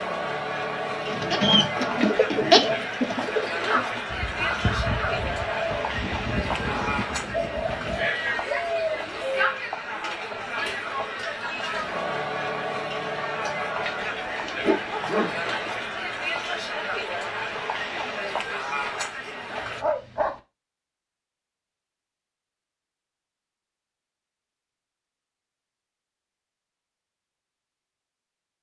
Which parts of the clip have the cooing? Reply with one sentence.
The cooing can be heard from 1.0 to 9.4 s.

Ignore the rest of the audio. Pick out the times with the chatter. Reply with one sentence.
The chatter can be heard from 0.0 to 19.9 s.